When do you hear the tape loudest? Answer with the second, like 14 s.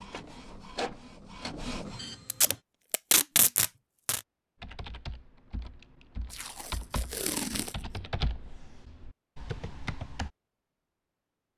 3 s.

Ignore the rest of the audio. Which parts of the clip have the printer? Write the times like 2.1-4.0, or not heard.
0.0-2.6.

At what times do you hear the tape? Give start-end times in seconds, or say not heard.
2.2-4.2, 6.3-8.0.